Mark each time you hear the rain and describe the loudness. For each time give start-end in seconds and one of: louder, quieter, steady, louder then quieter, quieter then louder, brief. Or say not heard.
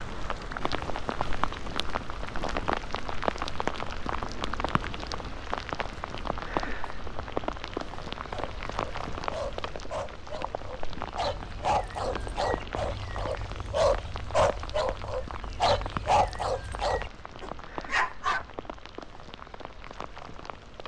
0.0-20.8 quieter.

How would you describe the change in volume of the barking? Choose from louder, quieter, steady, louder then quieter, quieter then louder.
louder.